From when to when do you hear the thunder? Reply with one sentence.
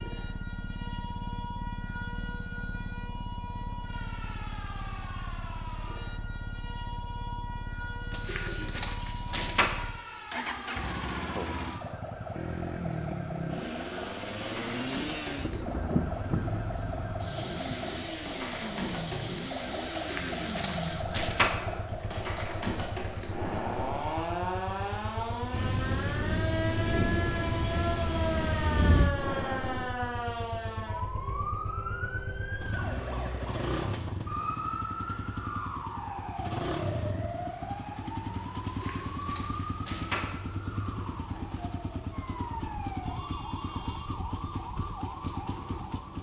You can hear the thunder from 15.3 to 18.1 s and from 25.5 to 29.1 s.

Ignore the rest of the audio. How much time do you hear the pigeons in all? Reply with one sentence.
You can hear the pigeons for 5 seconds altogether.